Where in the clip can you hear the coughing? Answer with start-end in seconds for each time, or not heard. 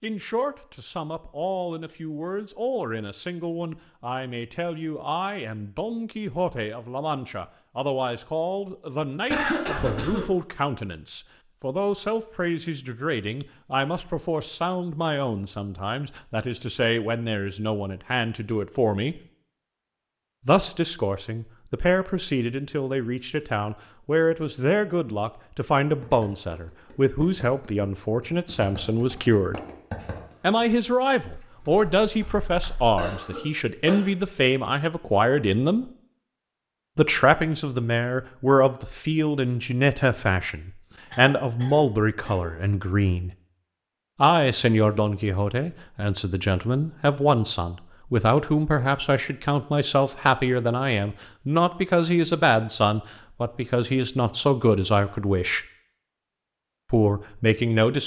9.3-10.3, 33.0-34.0, 41.1-42.5.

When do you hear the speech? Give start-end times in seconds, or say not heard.
0.0-19.2, 20.4-29.6, 30.4-35.9, 37.0-43.3, 44.1-55.6, 56.9-58.0.